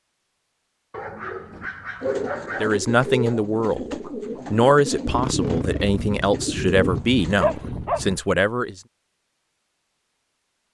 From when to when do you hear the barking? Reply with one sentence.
You can hear the barking from 0.9 to 2.8 s and from 6.8 to 8.2 s.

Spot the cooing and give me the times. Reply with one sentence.
You can hear the cooing from 1.5 to 7.7 s.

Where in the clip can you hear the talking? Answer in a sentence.
You can hear the talking from 2.6 to 8.8 s.